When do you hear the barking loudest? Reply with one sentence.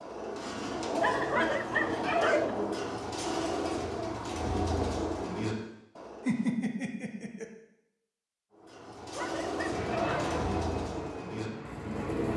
The volume of the barking peaks at 2 seconds.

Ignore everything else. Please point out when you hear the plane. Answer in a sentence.
You can hear the plane from 9.7 to 12.3 s.